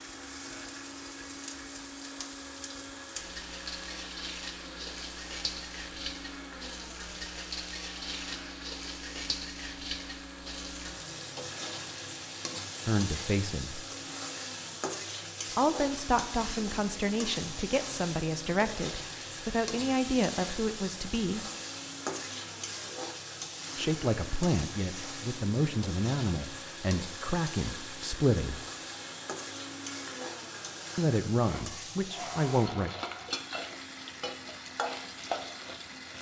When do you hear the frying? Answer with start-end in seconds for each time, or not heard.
0.0-36.1.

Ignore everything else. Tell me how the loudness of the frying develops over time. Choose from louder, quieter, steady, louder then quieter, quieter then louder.
steady.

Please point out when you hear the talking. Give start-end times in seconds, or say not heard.
12.8-13.8, 15.6-21.4, 23.8-28.6, 30.9-32.9.